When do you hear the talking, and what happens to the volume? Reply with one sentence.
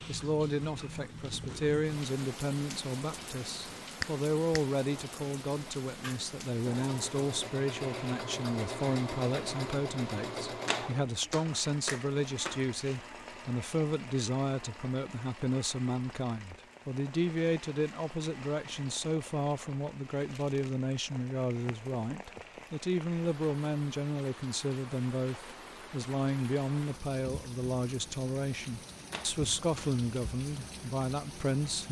The talking can be heard from 0.1 to 31.8 s, at a steady volume.